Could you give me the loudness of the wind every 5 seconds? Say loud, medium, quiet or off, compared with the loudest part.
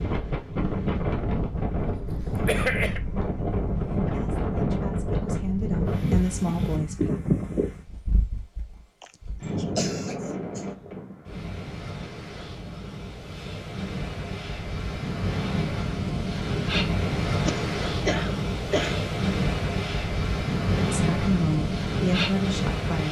loud, loud, medium, loud, loud.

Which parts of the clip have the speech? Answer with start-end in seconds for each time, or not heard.
3.9-7.2, 20.8-23.0.